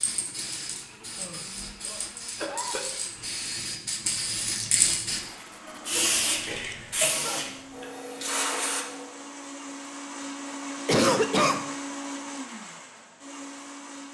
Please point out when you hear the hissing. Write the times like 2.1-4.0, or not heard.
0.0-9.2.